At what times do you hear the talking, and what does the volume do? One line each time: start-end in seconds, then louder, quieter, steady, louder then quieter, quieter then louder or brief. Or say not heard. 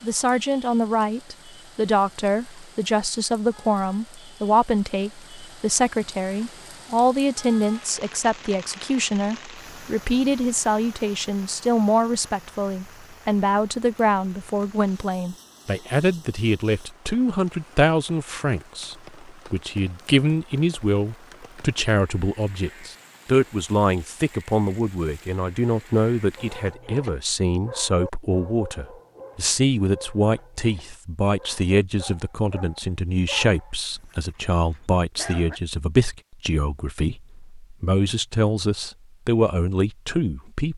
0.0-40.7 steady.